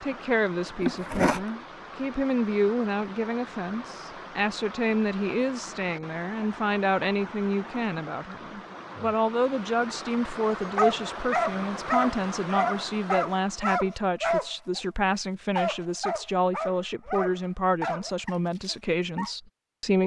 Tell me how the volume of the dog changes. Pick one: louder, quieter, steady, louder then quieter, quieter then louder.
quieter.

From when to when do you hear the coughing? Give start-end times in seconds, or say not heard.
0.8-1.4.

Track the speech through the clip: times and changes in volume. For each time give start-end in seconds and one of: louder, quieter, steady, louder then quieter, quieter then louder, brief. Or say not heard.
0.0-20.0 steady.